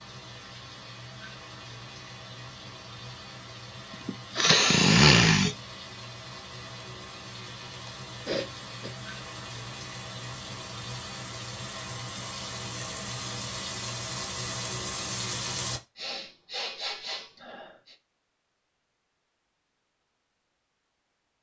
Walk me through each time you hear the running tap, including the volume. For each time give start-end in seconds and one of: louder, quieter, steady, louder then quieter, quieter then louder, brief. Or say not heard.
0.0-15.8 louder.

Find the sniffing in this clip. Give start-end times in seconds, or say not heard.
4.0-5.5, 7.8-8.9, 15.9-17.9.